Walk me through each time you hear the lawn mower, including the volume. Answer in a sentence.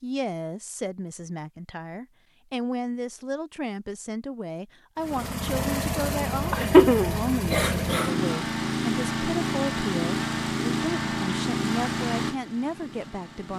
The lawn mower can be heard from 5.0 to 13.5 s, at a steady volume.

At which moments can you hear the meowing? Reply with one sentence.
The meowing can't be heard in this clip.